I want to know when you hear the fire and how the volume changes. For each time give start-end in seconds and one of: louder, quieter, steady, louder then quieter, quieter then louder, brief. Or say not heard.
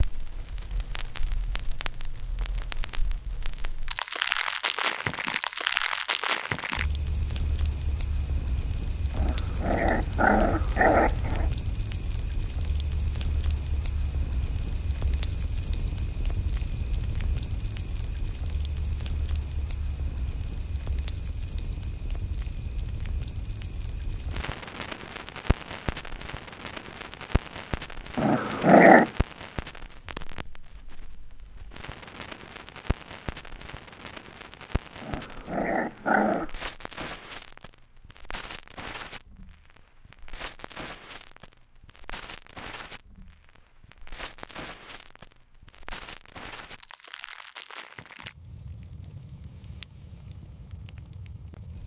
0.0-51.8 quieter.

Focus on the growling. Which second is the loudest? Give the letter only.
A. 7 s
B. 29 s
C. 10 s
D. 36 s
B.